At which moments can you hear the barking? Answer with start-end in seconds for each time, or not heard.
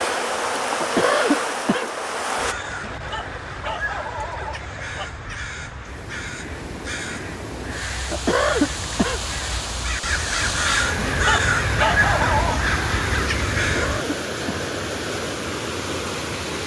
2.8-5.1, 10.9-12.6.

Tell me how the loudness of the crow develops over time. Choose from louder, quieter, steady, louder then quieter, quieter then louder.
louder.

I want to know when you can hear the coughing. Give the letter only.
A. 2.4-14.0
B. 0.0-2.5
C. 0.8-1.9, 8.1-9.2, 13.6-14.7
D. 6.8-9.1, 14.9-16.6
C.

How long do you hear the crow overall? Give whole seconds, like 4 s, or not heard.
12 s.